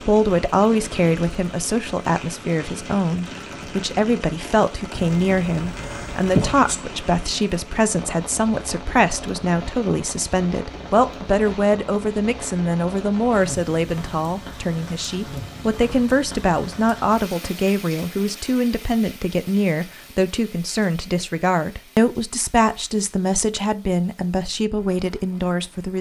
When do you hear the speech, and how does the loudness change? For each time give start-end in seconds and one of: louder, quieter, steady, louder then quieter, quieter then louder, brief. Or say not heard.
0.0-25.9 steady.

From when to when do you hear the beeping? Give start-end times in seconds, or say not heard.
4.9-6.8.